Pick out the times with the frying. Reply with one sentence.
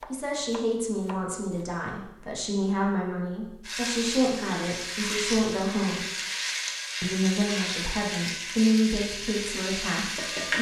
The frying can be heard from 3.6 to 10.5 s.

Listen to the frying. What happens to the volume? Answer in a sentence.
The volume of the frying stays about the same.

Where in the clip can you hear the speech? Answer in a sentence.
You can hear the speech from 0.1 to 6.0 s and from 7.0 to 10.5 s.